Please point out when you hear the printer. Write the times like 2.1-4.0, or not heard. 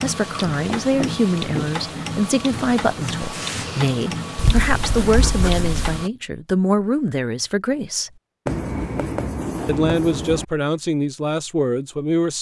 0.0-6.1.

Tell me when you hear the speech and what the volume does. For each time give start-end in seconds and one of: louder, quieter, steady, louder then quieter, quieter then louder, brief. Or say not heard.
0.0-8.1 steady
9.7-12.3 brief.